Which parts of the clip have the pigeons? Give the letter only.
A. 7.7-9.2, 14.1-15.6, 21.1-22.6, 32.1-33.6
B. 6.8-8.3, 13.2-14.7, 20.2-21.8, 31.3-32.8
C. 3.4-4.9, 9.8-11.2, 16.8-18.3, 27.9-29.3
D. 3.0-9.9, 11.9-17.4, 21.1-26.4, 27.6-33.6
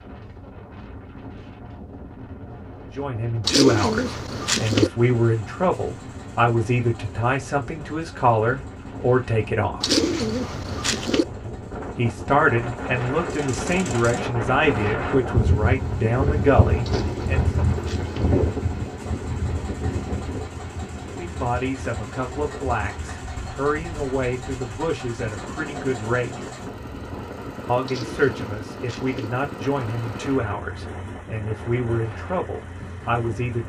C.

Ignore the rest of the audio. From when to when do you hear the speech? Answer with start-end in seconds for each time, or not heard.
3.0-9.9, 11.9-17.4, 21.1-26.4, 27.6-33.6.